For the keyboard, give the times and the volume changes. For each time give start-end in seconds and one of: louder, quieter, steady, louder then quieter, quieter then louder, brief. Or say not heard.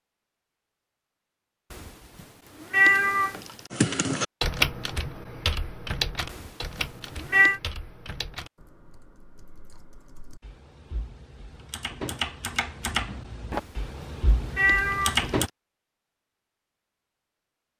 3.7-15.5 quieter then louder.